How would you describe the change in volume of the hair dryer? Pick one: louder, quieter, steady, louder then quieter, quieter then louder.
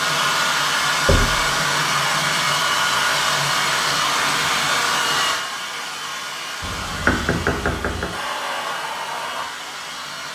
quieter.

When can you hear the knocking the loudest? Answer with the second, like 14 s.
7 s.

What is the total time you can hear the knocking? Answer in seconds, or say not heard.
2 s.